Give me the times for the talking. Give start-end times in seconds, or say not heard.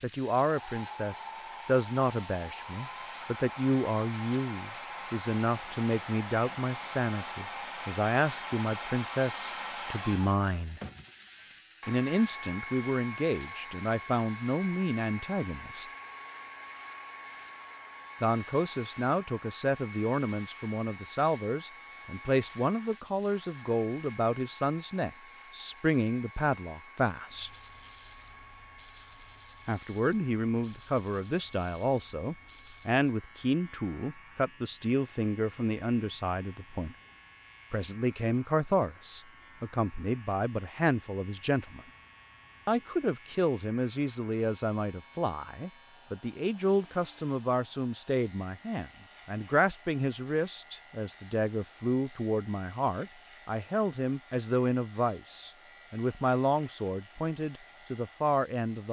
0.0-10.8, 11.8-15.8, 18.2-27.5, 29.6-37.0, 37.7-41.8, 42.6-58.8.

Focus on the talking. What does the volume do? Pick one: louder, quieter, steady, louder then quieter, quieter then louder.
steady.